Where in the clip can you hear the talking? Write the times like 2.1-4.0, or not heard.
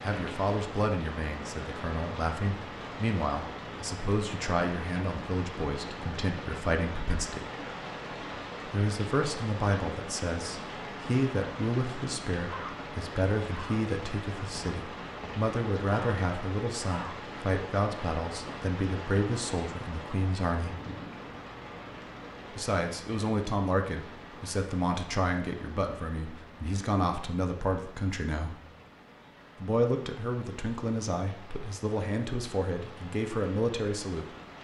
0.0-7.5, 8.7-20.8, 22.5-28.6, 29.6-34.2.